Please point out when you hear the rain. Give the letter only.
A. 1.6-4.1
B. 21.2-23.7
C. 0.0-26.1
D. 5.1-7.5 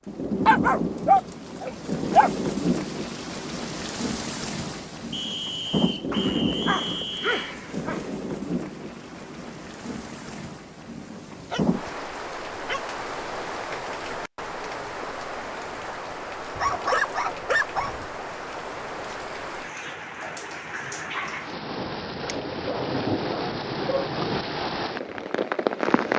C.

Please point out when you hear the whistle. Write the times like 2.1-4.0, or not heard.
5.1-7.5.